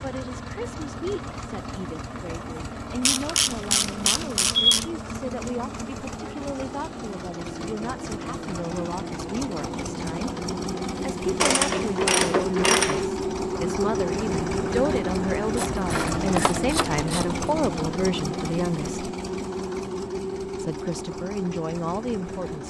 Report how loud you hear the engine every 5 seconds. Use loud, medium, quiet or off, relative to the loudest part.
medium, medium, loud, loud, medium.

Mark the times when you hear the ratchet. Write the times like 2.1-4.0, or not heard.
3.0-4.8, 11.4-13.1, 15.6-17.5.